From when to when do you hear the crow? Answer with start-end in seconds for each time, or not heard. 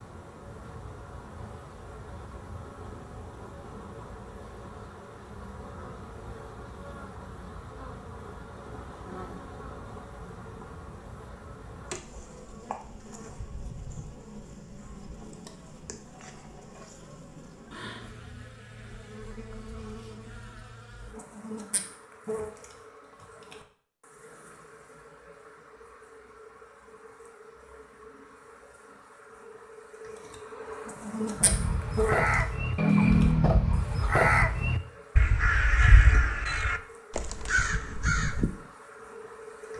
31.4-38.5.